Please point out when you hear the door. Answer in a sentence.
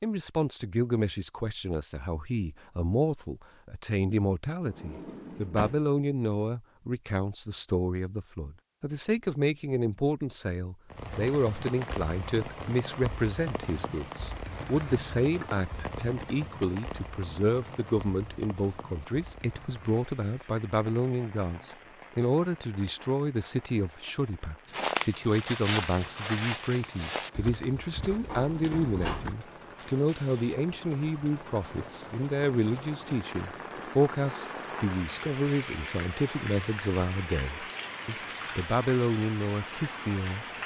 You can hear the door from 4.6 to 5.8 s and from 28.2 to 29.3 s.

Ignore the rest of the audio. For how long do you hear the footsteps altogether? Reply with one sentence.
You can hear the footsteps for 6 seconds altogether.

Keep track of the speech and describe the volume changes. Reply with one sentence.
The volume of the speech stays about the same.